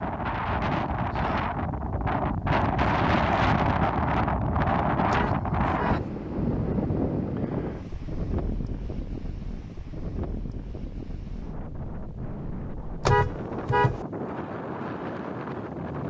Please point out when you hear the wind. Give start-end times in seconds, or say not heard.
0.0-16.0.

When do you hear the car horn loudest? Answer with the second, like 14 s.
13 s.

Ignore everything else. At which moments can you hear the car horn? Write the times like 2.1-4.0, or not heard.
5.1-6.1, 13.0-14.1.